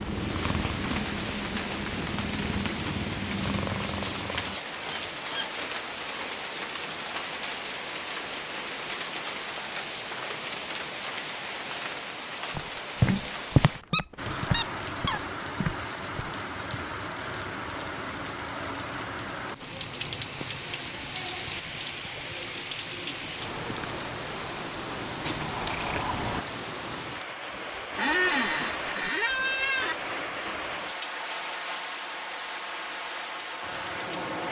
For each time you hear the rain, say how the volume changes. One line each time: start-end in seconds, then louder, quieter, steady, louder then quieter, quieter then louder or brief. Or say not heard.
0.0-34.4 steady.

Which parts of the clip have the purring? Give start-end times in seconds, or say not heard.
0.0-4.6, 23.4-26.4.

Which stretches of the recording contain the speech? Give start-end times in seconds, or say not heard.
not heard.